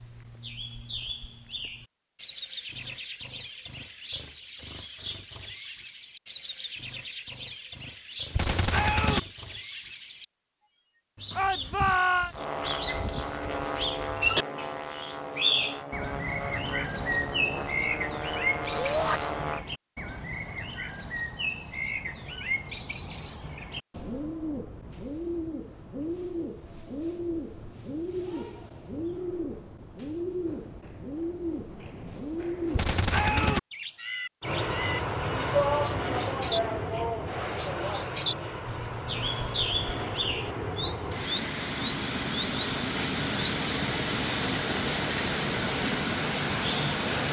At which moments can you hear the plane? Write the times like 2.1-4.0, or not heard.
12.3-19.6, 34.4-47.2.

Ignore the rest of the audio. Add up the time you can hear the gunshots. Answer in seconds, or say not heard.
2 s.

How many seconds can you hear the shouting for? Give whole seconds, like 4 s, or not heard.
4 s.